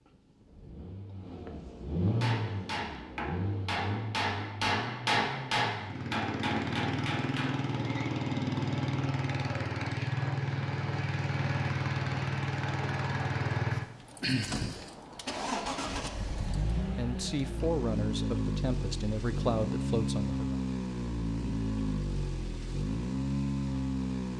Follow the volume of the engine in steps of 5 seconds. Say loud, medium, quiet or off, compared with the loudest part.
medium, loud, loud, loud, loud.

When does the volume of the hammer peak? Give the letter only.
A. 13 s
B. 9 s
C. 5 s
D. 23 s
C.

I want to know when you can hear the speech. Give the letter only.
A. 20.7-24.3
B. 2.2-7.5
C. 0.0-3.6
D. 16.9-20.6
D.